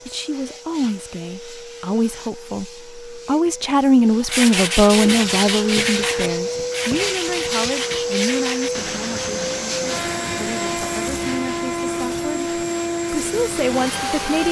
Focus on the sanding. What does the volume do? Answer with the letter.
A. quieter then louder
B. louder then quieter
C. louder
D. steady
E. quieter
E.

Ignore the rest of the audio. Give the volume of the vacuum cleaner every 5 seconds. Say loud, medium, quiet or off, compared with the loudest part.
quiet, loud, loud.